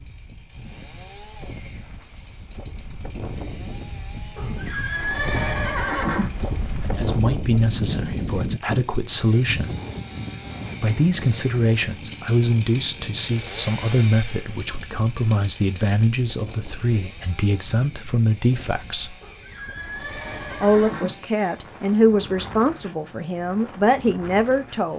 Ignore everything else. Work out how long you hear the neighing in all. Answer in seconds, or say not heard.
4 s.